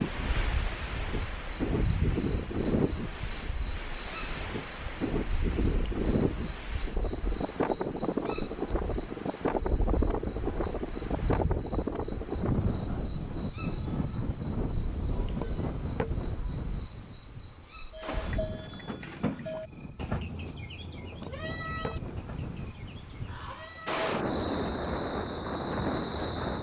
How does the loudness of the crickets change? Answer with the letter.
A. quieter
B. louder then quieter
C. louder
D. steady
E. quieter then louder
D.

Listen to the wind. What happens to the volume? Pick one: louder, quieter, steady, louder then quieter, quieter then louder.
quieter then louder.